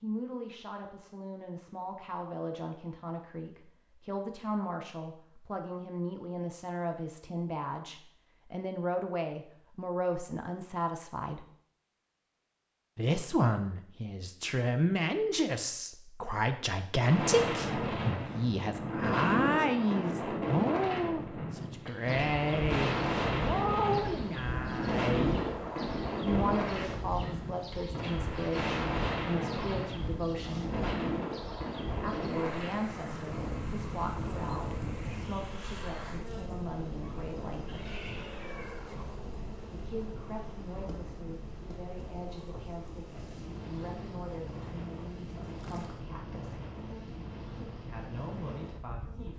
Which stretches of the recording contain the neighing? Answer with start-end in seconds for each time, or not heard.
37.6-39.1.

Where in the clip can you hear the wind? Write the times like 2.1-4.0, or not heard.
16.9-49.3.